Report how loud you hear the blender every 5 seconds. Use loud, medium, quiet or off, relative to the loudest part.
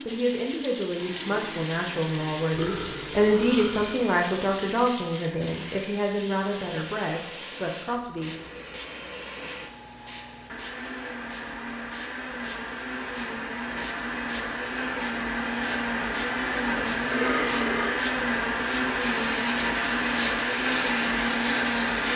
quiet, quiet, medium, loud, loud.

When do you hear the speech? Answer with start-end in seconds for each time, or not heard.
0.0-8.3.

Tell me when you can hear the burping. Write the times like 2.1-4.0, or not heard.
2.5-4.0, 16.9-17.9.